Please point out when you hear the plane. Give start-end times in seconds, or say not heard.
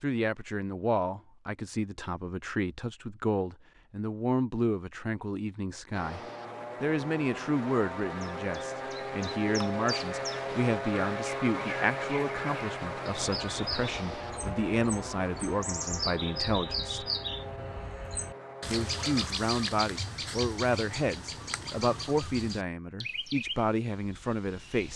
5.9-19.3.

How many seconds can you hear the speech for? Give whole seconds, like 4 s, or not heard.
23 s.